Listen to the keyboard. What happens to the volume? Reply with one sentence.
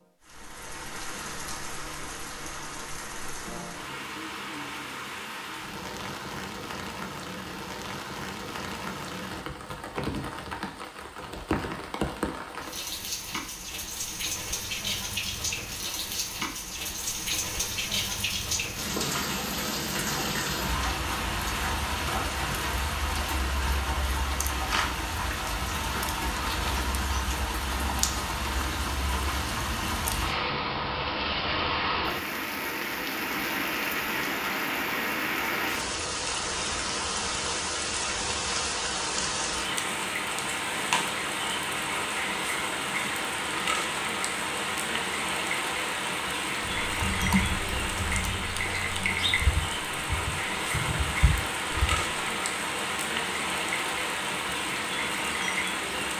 The volume of the keyboard goes down, then up.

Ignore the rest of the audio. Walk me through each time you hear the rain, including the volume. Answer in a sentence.
You can hear the rain from 0.0 to 56.1 s, getting louder.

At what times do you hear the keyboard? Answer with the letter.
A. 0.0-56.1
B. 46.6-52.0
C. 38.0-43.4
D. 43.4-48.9
B.